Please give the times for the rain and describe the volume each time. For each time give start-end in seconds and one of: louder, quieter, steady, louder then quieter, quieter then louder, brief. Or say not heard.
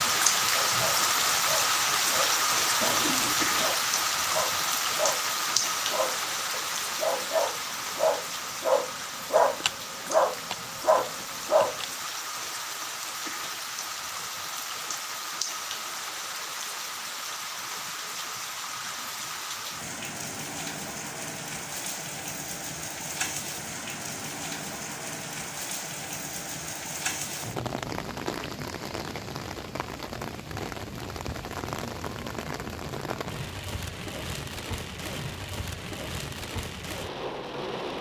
0.0-37.9 quieter.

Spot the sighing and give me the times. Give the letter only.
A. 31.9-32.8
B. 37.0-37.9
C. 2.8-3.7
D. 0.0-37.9
C.